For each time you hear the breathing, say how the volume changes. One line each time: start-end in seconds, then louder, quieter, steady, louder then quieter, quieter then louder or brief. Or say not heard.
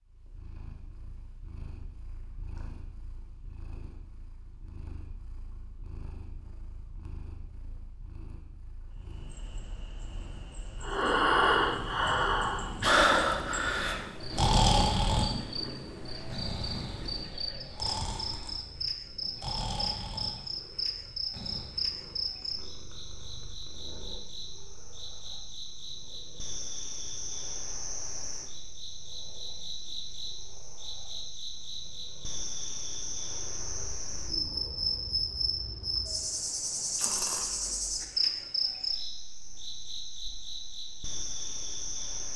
10.8-21.8 quieter.